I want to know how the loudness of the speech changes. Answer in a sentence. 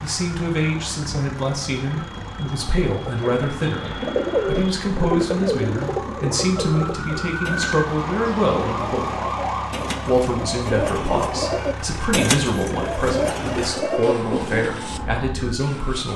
The volume of the speech stays about the same.